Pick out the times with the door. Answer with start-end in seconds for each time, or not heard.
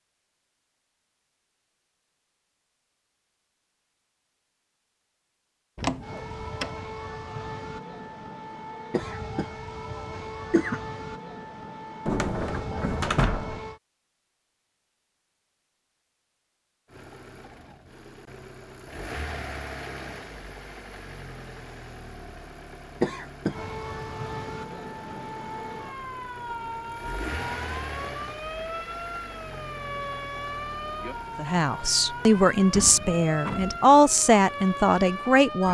5.8-6.8, 12.1-13.6, 32.7-33.8.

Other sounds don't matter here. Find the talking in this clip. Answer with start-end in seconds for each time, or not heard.
31.4-35.6.